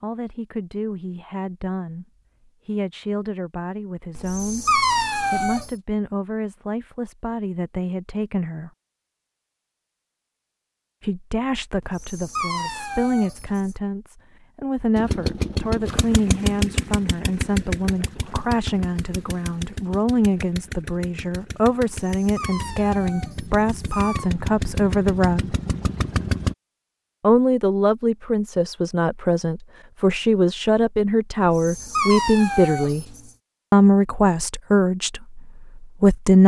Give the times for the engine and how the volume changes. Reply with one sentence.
The engine can be heard from 14.9 to 26.6 s, getting quieter then louder.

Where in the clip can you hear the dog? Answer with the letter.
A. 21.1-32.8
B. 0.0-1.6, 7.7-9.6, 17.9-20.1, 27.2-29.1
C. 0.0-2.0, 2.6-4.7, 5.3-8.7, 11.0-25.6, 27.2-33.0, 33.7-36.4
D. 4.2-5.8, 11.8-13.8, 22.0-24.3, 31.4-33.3
D.